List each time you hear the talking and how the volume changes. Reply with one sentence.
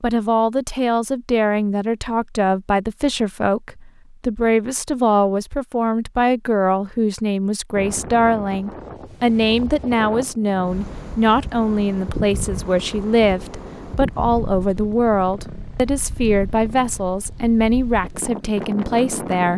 The talking can be heard from 0.0 to 19.5 s, at a steady volume.